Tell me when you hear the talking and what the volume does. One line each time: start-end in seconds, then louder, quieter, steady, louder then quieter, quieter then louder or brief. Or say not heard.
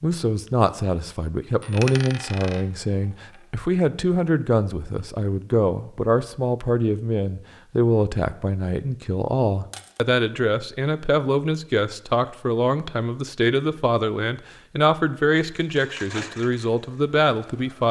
0.0-17.8 steady.